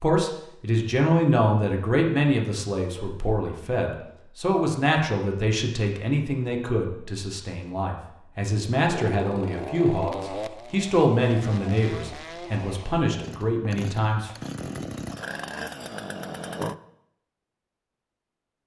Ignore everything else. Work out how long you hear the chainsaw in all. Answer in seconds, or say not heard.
8 s.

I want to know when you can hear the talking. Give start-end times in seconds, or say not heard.
0.0-14.3.